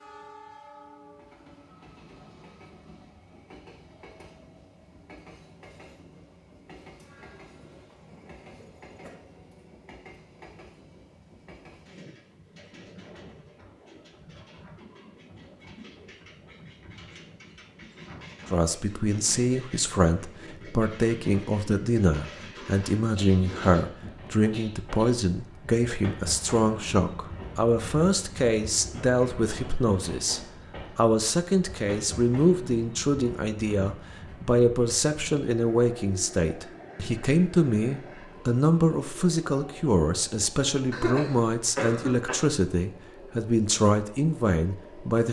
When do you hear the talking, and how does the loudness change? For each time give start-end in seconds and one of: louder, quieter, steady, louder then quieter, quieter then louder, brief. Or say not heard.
18.5-45.2 steady.